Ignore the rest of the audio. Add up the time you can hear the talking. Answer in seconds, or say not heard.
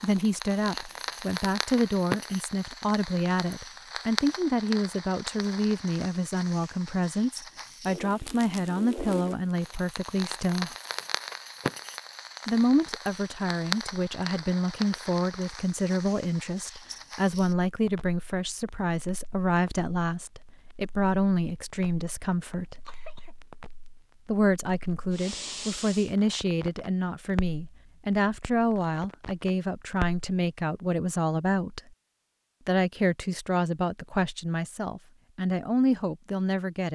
33 s.